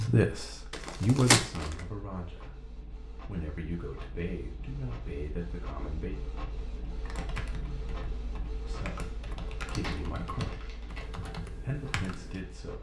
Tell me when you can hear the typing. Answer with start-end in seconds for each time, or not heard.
6.8-12.4.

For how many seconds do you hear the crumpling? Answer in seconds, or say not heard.
3 s.